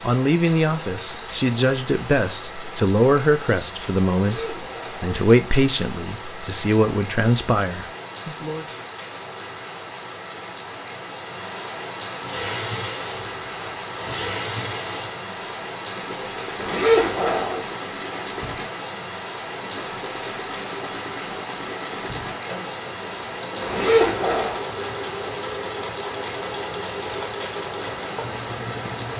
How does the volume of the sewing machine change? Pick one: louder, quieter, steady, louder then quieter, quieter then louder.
steady.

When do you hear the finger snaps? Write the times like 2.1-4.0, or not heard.
not heard.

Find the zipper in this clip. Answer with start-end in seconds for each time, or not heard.
4.2-5.6, 16.6-17.6, 23.6-24.6.